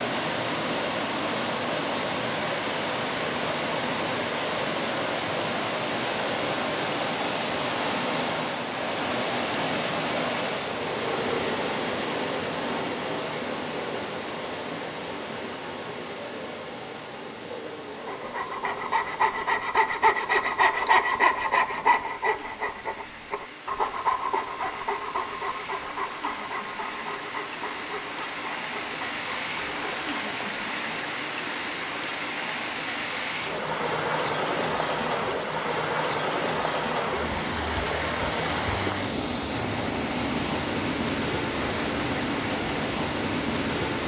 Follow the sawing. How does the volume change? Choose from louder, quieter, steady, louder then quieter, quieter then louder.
quieter.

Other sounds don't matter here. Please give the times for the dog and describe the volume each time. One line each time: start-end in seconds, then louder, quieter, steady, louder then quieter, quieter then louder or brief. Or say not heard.
not heard.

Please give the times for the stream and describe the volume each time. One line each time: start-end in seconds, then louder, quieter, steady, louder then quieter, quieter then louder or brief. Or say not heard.
0.0-44.0 quieter then louder.